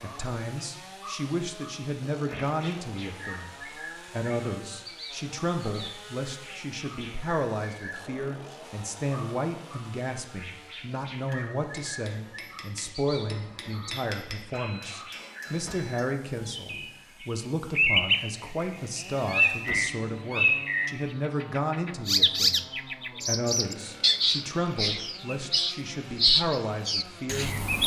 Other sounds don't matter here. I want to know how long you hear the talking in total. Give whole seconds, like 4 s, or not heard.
27 s.